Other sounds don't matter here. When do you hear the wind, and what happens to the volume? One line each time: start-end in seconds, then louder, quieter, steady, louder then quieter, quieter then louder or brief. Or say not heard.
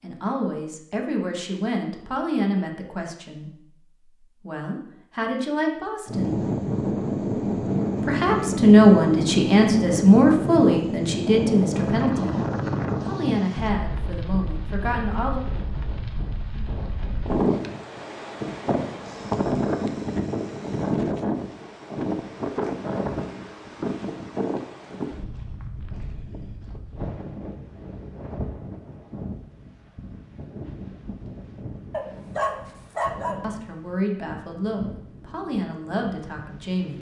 6.0-36.9 quieter.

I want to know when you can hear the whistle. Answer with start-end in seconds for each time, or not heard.
not heard.